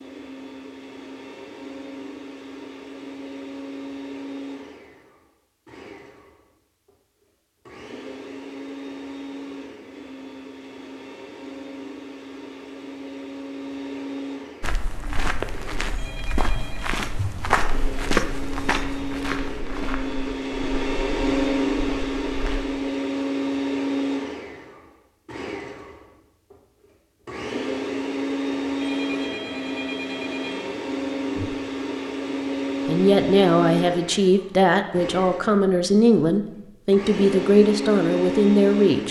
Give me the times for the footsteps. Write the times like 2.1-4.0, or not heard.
14.6-22.7.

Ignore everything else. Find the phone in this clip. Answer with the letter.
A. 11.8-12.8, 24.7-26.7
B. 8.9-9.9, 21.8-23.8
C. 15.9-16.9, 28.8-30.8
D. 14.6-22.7
C.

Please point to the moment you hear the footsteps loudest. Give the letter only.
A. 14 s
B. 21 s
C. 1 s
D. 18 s
D.